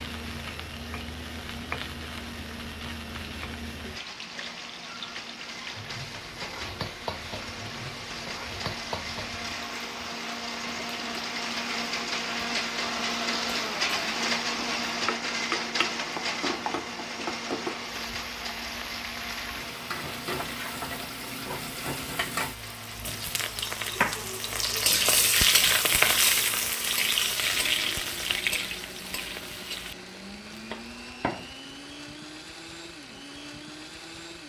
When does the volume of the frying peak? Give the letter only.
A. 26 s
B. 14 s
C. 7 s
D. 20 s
A.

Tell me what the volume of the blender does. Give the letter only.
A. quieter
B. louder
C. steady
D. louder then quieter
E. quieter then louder
D.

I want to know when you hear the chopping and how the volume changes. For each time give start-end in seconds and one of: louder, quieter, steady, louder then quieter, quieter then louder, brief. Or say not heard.
not heard.